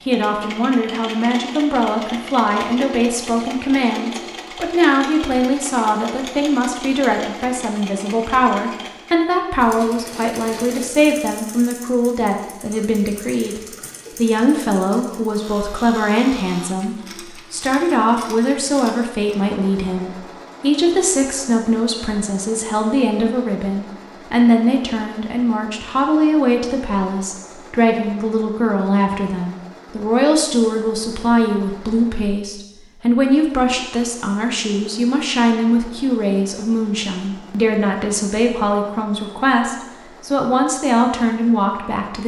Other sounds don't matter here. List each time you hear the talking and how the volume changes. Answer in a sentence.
You can hear the talking from 0.1 to 42.2 s, at a steady volume.